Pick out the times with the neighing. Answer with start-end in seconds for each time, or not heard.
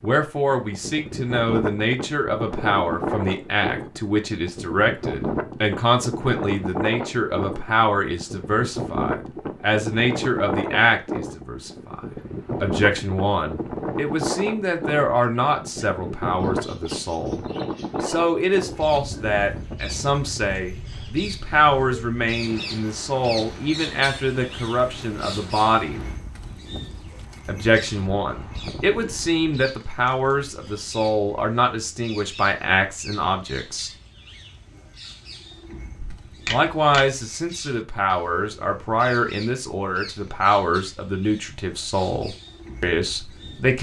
36.0-37.0.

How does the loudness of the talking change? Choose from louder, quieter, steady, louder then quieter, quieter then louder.
steady.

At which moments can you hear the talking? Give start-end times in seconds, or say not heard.
0.0-17.4, 18.0-26.0, 27.4-33.9, 36.5-43.7.